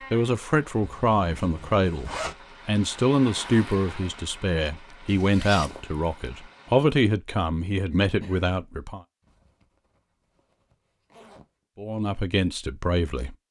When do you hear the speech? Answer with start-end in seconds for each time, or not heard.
0.1-9.0, 11.8-13.3.